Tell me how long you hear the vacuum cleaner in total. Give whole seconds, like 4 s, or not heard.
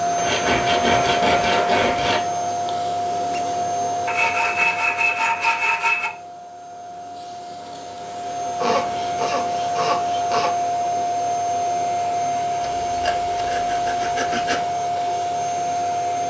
16 s.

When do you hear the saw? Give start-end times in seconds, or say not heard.
0.1-2.2, 4.0-6.1, 8.6-10.6, 12.8-14.6.